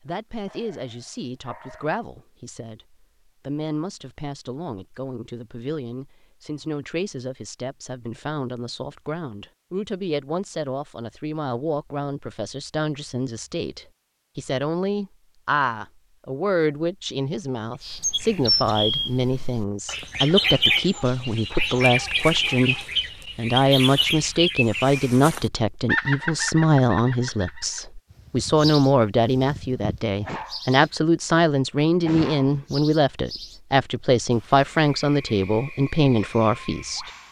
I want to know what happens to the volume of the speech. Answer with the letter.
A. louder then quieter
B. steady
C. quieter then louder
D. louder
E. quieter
D.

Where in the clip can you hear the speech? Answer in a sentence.
The speech can be heard from 0.0 to 37.1 s.